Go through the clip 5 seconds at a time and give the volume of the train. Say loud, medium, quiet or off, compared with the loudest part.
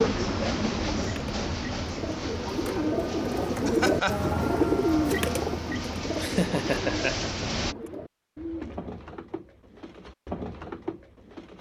loud, loud, off.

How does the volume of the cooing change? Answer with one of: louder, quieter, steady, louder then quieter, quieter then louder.
louder then quieter.